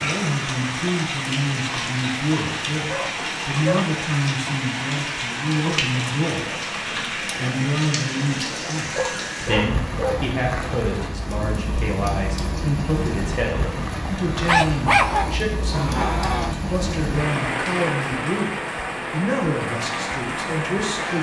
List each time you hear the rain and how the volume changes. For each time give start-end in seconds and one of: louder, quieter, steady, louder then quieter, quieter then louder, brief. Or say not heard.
0.0-21.1 steady.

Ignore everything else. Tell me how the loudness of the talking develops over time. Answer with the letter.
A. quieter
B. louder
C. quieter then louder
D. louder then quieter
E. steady
E.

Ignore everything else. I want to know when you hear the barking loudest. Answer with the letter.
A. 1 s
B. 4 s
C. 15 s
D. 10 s
C.